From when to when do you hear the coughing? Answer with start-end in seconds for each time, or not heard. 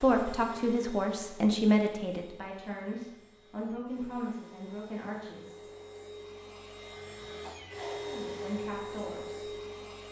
7.4-8.1.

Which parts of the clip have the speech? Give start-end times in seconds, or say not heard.
0.0-5.6, 8.1-9.5.